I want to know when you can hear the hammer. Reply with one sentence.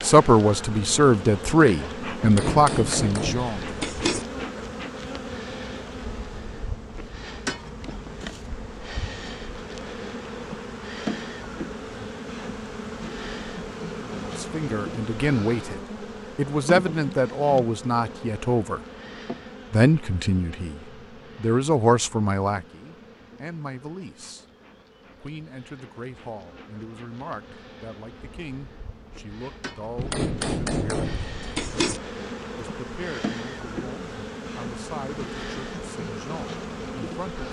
The hammer can be heard from 2.2 to 4.2 s and from 29.9 to 32.0 s.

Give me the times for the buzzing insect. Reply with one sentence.
The buzzing insect can be heard from 0.0 to 37.4 s.